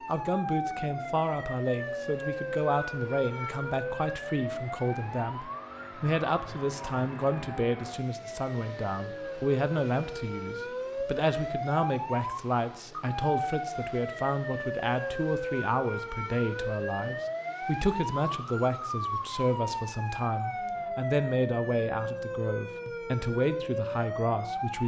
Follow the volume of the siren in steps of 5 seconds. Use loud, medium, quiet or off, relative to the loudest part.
loud, medium, loud, loud, loud.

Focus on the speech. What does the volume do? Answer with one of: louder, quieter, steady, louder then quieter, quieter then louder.
steady.